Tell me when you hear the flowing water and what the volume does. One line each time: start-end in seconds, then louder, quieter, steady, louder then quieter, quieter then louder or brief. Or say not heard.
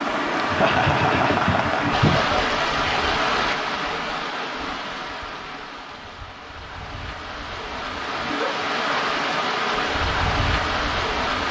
0.0-11.4 quieter then louder.